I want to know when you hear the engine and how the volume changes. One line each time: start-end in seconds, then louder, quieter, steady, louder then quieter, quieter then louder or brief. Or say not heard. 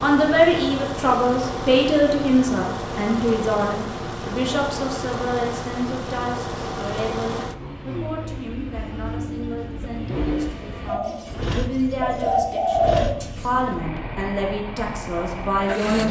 0.0-16.0 steady.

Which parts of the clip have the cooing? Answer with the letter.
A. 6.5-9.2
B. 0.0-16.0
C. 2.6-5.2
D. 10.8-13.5
D.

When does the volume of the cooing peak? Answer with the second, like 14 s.
13 s.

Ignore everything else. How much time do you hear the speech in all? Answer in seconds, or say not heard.
16 s.